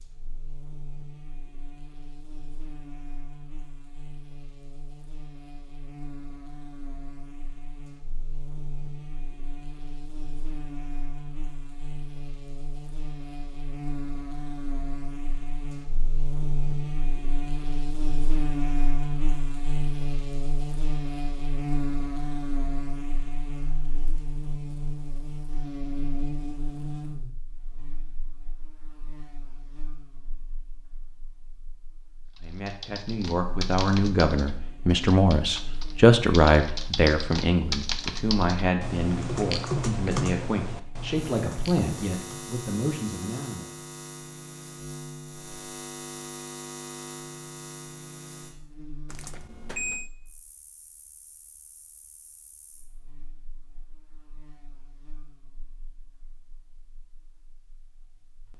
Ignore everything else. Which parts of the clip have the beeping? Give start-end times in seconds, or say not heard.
49.0-50.1.